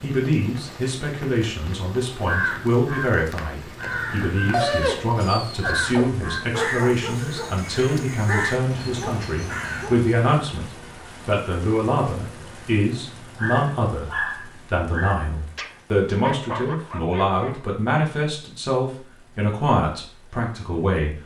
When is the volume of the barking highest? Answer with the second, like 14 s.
5 s.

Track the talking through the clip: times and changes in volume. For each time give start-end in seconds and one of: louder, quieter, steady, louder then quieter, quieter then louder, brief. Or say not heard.
0.0-21.2 steady.